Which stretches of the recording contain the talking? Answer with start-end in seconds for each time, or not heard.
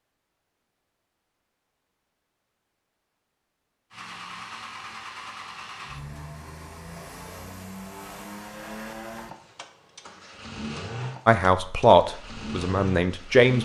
11.2-13.6.